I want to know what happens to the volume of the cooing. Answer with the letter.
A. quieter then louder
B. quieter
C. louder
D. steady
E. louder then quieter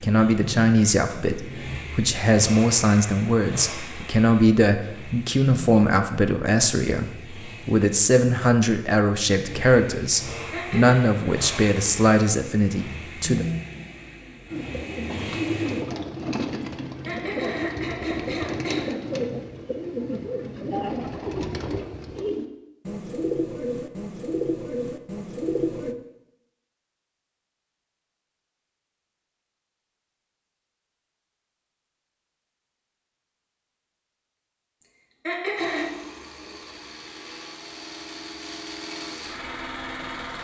D.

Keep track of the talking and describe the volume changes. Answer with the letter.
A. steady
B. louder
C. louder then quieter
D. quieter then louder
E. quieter
A.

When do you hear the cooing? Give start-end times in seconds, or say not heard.
14.5-25.9.